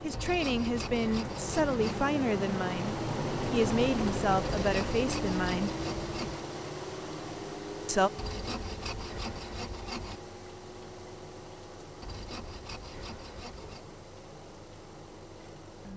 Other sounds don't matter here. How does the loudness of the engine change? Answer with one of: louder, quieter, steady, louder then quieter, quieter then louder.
quieter.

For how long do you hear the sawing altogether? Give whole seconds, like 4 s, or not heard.
8 s.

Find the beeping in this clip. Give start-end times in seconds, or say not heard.
not heard.